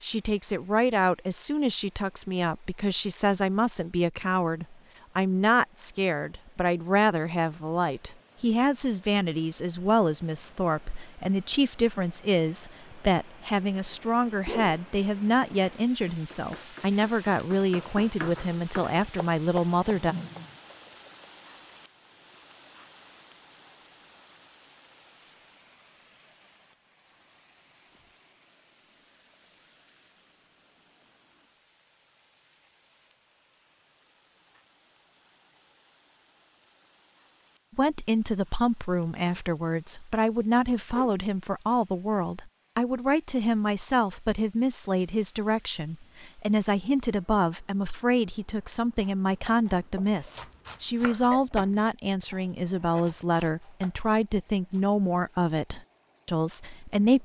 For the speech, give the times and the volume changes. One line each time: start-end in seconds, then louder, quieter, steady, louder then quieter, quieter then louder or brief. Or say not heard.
0.0-20.1 steady
37.8-57.1 steady.